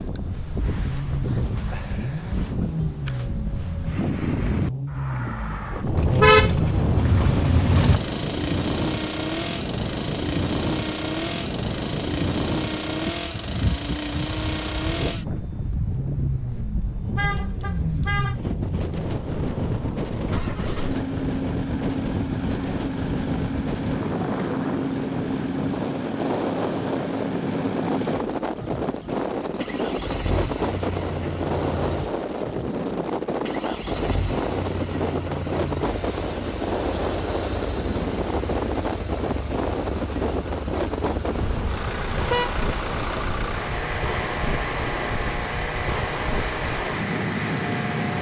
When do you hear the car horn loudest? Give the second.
6 s.